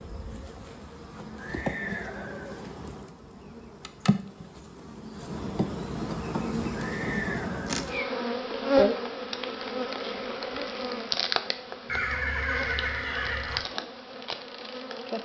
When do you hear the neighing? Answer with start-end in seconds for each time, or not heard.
1.4-2.8, 6.7-8.3, 11.8-13.6.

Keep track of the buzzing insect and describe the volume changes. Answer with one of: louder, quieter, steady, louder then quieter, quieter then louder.
louder then quieter.